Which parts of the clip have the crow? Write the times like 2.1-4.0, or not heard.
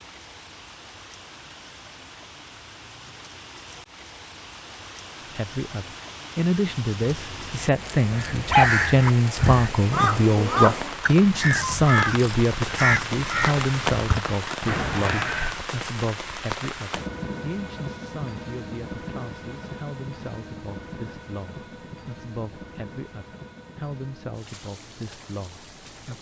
8.1-15.6.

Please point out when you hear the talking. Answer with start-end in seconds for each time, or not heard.
5.3-26.1.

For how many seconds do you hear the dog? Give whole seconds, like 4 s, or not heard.
2 s.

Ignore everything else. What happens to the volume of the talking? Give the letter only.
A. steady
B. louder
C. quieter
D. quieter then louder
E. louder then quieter
C.